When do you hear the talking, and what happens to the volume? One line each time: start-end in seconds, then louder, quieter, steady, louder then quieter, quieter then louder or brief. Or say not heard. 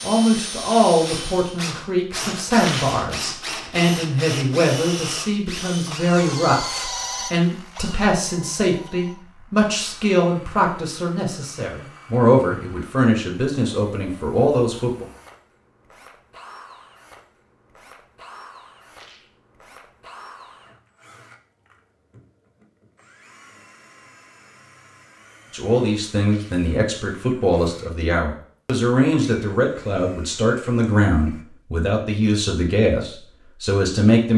0.0-15.1 steady
25.5-34.3 steady.